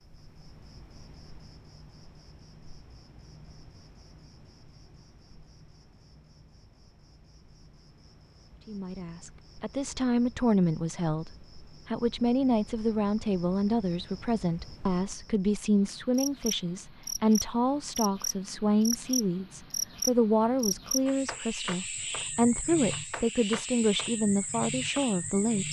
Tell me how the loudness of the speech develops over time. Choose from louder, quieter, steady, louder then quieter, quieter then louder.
steady.